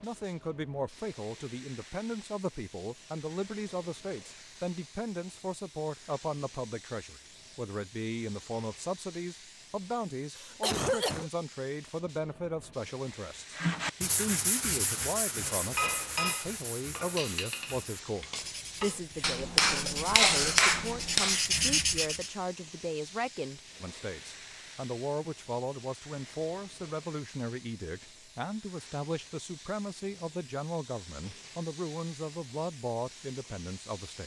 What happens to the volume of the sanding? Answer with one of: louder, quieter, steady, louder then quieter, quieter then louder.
quieter then louder.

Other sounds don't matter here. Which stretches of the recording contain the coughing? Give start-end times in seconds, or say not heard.
10.3-11.3, 19.6-20.6.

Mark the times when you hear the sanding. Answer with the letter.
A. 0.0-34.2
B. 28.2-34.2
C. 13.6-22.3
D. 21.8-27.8
C.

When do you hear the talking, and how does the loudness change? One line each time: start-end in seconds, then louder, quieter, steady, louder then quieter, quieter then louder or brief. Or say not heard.
0.0-34.2 steady.